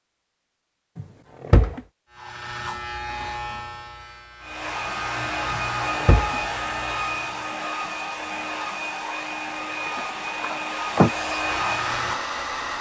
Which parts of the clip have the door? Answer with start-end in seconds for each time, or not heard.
0.9-1.8, 5.5-6.4, 9.8-11.1.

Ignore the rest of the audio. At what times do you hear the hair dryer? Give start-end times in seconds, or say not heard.
4.4-12.7.